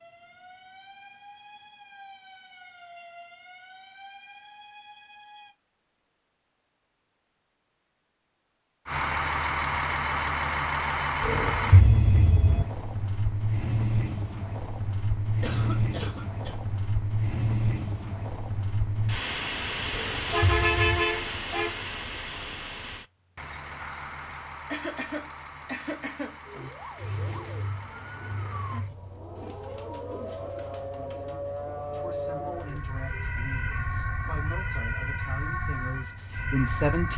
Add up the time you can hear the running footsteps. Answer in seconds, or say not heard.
not heard.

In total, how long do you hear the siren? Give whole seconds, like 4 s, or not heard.
16 s.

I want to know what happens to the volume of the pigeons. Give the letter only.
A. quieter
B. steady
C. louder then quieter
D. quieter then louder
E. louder
A.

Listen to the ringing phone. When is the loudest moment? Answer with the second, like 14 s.
12 s.